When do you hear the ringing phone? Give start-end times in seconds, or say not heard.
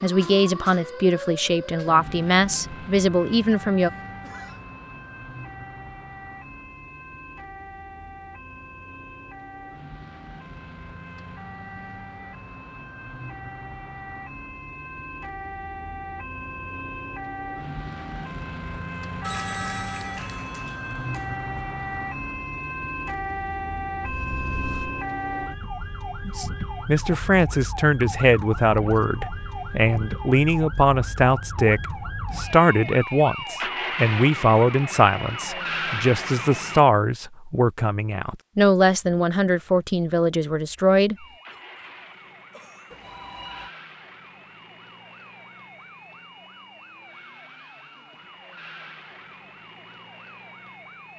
19.2-21.2, 42.9-43.8.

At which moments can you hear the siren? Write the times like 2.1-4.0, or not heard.
0.0-36.9, 41.1-51.1.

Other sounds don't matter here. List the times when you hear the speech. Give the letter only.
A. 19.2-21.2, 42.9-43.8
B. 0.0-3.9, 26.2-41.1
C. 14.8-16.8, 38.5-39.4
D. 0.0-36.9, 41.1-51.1
B.